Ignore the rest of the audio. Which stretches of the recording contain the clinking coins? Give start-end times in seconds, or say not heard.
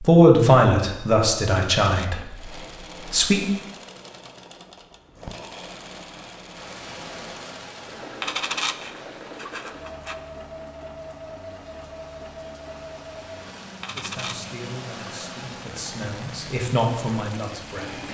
1.8-2.2, 8.2-10.2, 13.8-15.2.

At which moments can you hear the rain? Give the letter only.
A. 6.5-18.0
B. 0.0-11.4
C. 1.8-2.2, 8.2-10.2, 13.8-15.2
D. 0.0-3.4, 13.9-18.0
A.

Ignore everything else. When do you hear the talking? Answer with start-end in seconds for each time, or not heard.
0.0-3.4, 13.9-18.0.